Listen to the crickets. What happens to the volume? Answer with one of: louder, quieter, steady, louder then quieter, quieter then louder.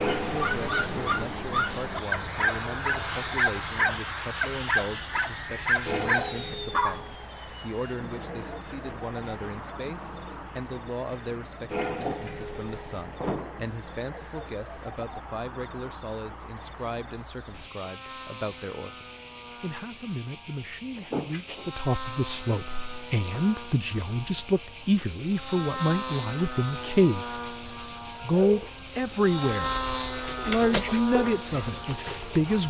steady.